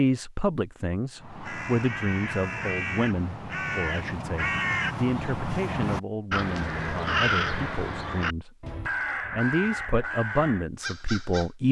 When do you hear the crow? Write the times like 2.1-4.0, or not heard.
1.1-11.5.